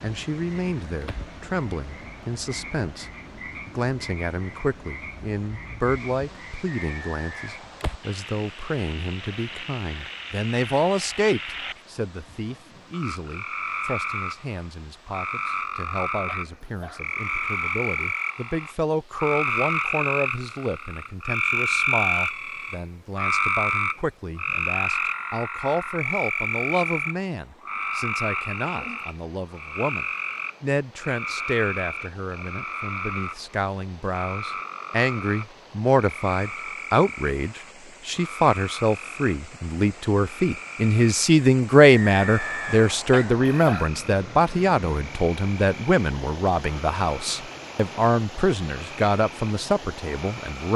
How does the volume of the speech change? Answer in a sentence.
The volume of the speech goes up.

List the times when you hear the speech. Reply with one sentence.
You can hear the speech from 0.0 to 50.7 s.